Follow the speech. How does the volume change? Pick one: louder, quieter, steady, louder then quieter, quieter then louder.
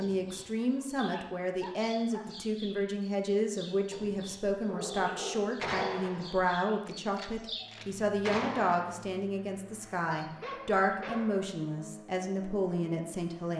steady.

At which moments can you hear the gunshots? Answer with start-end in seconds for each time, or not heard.
5.6-9.1.